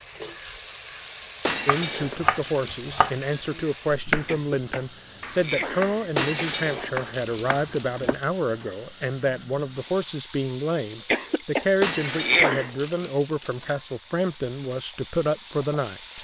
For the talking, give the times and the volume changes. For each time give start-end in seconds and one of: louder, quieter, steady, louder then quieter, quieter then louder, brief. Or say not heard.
1.6-16.1 steady.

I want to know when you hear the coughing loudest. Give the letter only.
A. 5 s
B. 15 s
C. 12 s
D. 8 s
C.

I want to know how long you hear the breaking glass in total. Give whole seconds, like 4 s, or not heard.
6 s.